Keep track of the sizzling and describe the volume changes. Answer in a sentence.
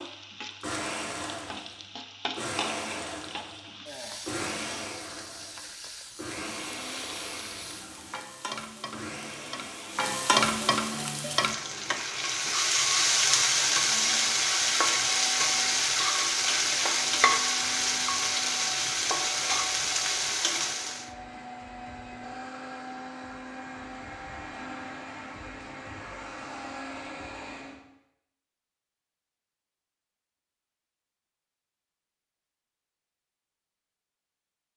The volume of the sizzling goes up.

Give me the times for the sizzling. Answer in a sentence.
You can hear the sizzling from 0.0 to 21.1 s.